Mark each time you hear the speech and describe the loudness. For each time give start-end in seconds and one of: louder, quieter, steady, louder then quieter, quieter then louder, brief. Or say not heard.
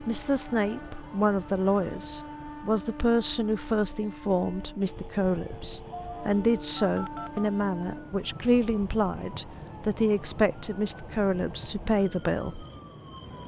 0.0-12.7 steady.